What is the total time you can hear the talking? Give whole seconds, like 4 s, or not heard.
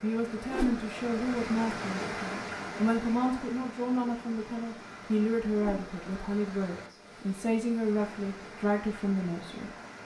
10 s.